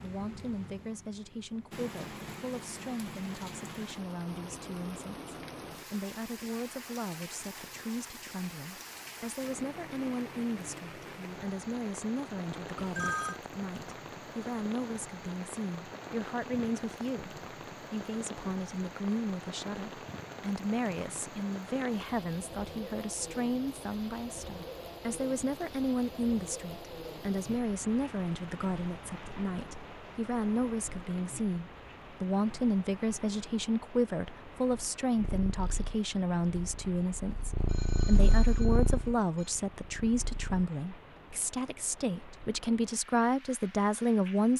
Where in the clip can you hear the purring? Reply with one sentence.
You can hear the purring from 35.2 to 40.6 s.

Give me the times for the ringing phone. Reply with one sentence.
The ringing phone can be heard from 12.8 to 13.4 s and from 37.6 to 39.5 s.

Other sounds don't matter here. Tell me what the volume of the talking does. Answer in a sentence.
The volume of the talking goes up.